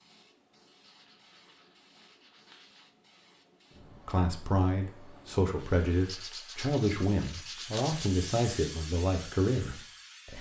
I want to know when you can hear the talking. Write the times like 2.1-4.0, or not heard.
4.0-10.3.